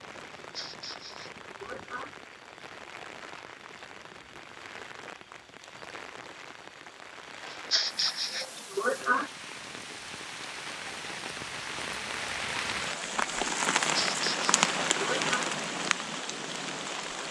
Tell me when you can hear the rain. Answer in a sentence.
You can hear the rain from 0.0 to 17.2 s.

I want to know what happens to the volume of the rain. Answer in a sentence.
The volume of the rain goes up.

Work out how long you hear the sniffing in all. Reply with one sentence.
You can hear the sniffing for 5 seconds altogether.